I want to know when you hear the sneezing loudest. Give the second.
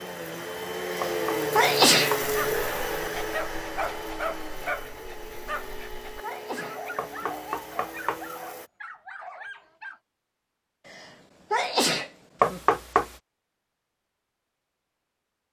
2 s.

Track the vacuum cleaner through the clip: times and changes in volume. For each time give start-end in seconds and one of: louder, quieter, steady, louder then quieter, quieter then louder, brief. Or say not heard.
0.0-8.7 quieter.